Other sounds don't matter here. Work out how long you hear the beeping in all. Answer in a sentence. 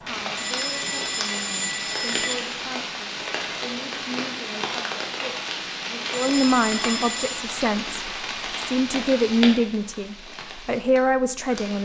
The beeping can be heard for 3 seconds in total.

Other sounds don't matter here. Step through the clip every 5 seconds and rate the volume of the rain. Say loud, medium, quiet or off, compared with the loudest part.
loud, loud, medium.